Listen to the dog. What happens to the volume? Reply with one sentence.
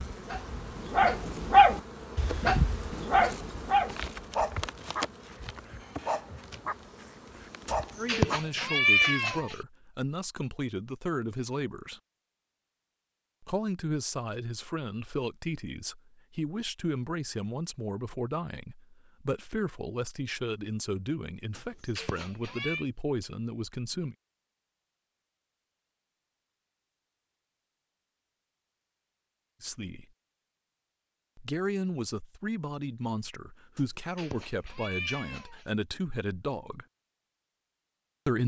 The loudness of the dog goes down.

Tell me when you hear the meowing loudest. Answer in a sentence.
The loudest moment of the meowing is at 9 seconds.